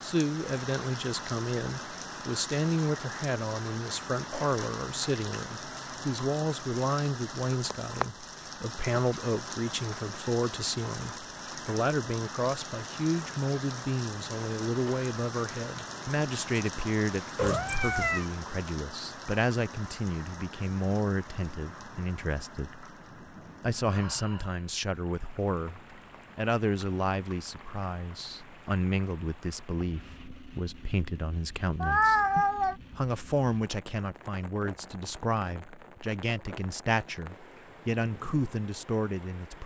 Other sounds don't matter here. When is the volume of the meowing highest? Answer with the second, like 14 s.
32 s.